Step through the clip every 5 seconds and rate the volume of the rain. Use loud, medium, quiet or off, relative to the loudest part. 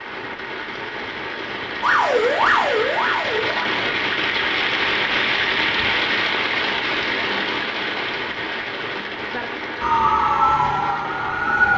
loud, loud, medium.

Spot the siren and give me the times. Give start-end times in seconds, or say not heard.
1.8-3.9, 9.8-11.7.